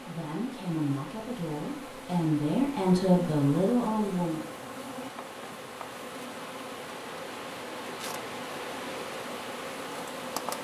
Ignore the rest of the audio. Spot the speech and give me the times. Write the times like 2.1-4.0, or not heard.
0.1-4.5.